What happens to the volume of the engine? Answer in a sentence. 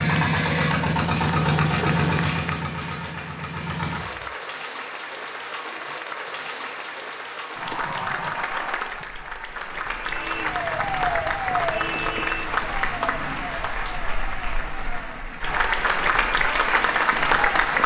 The loudness of the engine goes down.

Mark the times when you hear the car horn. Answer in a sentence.
You can't hear the car horn here.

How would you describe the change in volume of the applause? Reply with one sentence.
The volume of the applause goes up.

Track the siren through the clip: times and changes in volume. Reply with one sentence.
You can hear the siren from 10.0 to 15.4 s, getting quieter.